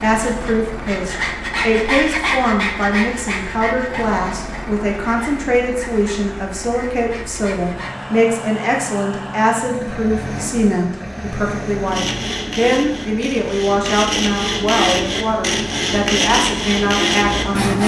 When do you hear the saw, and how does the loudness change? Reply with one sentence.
The saw can be heard from 0.2 to 8.2 s, getting quieter; and from 11.8 to 17.8 s, getting louder.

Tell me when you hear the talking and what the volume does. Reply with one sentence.
You can hear the talking from 0.0 to 17.8 s, at a steady volume.